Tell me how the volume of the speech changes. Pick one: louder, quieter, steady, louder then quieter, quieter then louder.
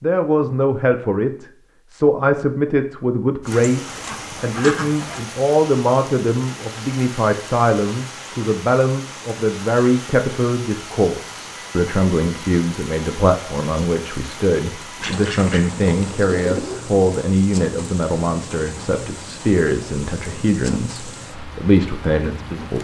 steady.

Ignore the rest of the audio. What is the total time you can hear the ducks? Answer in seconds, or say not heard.
3 s.